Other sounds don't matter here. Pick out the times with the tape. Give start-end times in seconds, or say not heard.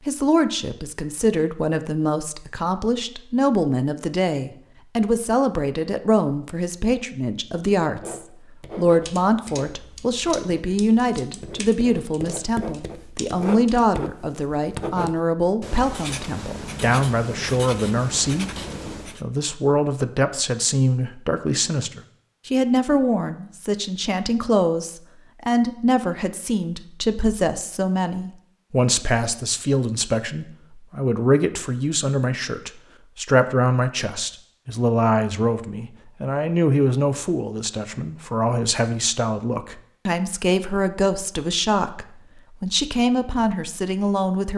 not heard.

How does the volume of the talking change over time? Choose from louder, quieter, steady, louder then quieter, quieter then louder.
steady.